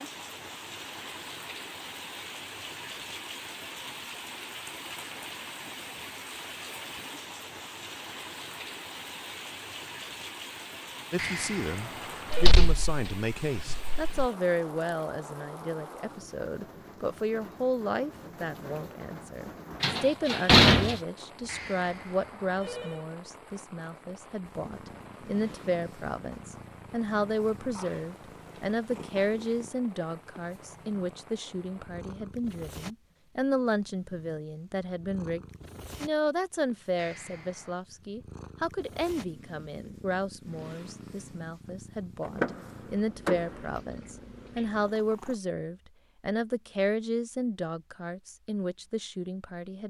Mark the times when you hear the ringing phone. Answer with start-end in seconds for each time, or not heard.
11.2-12.5, 21.4-23.1, 37.0-37.8.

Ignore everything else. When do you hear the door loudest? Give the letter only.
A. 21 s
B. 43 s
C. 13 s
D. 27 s
A.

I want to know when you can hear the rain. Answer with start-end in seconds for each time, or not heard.
0.0-32.1.